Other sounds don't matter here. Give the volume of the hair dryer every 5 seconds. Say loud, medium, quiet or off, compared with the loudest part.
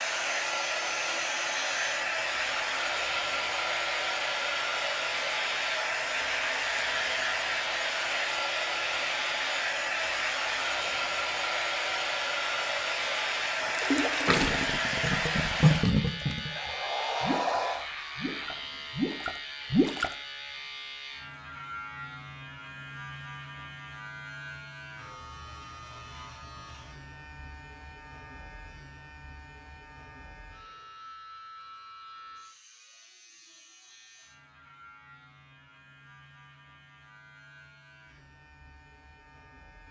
loud, loud, loud, loud, off, off, off, off.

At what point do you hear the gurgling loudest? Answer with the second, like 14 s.
16 s.